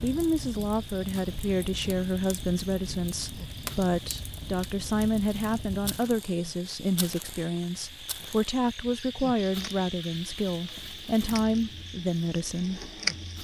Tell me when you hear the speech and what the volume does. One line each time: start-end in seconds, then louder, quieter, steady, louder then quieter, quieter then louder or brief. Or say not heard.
0.0-12.8 steady.